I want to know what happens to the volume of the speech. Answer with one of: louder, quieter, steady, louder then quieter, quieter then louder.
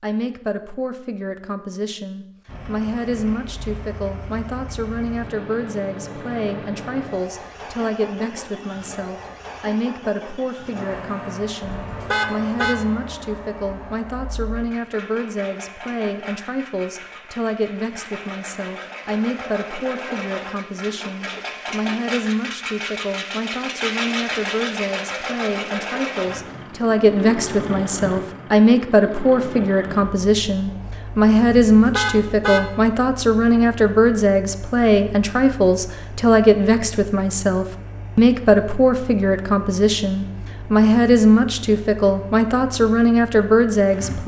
louder.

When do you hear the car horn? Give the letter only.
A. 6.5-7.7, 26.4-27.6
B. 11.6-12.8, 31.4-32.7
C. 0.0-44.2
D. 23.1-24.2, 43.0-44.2
B.